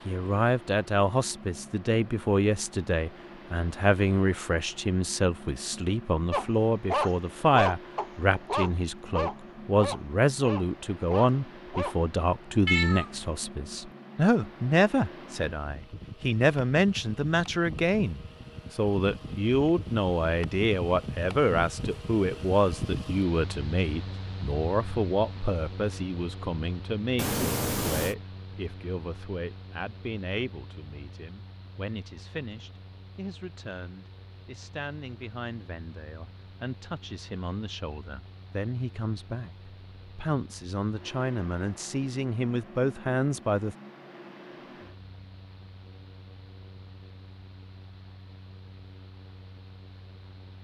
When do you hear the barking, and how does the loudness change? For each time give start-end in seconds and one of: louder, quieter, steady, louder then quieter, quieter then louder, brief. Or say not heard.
6.3-11.9 quieter.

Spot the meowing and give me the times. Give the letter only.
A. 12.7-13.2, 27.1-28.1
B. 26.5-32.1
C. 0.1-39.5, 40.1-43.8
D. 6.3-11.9
A.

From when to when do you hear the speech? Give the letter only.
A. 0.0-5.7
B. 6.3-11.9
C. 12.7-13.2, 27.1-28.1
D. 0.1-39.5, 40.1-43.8
D.